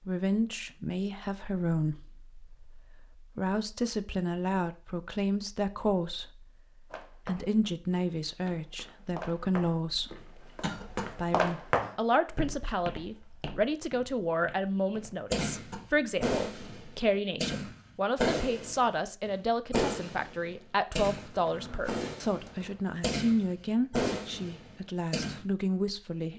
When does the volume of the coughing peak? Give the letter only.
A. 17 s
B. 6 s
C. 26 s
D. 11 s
D.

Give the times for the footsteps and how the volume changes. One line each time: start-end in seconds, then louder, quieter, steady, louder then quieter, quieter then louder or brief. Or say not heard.
6.9-15.3 louder then quieter
21.1-22.9 brief.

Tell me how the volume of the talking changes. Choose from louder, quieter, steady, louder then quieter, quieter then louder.
steady.